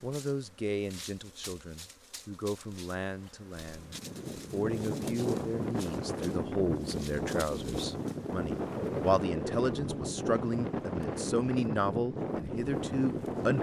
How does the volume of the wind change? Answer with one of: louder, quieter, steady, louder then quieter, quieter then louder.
steady.